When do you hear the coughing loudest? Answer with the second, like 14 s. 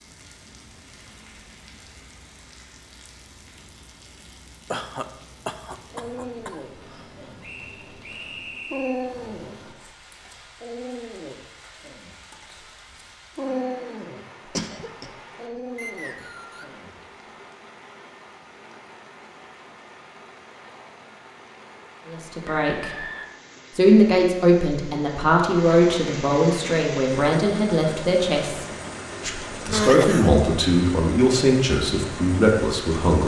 30 s.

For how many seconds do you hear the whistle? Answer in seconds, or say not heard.
3 s.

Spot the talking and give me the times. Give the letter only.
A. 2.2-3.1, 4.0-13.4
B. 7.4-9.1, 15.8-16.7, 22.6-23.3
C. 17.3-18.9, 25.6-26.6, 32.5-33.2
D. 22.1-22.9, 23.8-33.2
D.